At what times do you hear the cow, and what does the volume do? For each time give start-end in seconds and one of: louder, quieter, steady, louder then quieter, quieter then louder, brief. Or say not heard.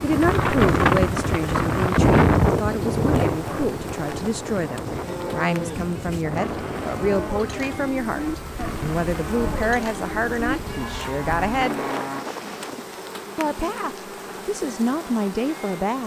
5.0-12.2 steady.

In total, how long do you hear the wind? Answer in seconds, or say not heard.
13 s.